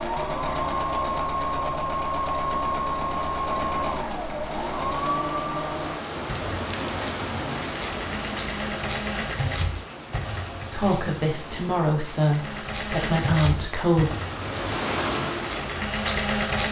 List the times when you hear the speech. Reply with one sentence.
You can hear the speech from 10.7 to 14.2 s.